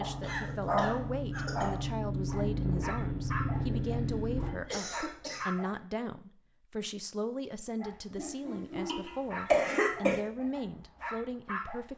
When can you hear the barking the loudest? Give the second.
1 s.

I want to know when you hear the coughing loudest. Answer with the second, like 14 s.
10 s.